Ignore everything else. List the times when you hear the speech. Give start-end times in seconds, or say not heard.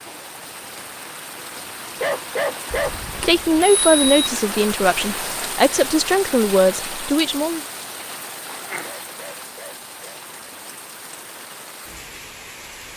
3.2-7.6.